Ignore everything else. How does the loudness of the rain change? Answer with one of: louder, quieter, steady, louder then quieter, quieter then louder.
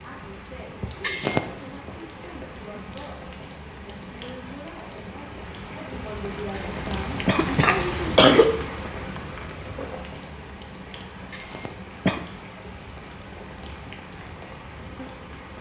louder then quieter.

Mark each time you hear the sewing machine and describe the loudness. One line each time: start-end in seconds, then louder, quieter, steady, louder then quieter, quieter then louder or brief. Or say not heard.
not heard.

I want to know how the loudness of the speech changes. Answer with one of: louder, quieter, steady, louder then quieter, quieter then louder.
louder.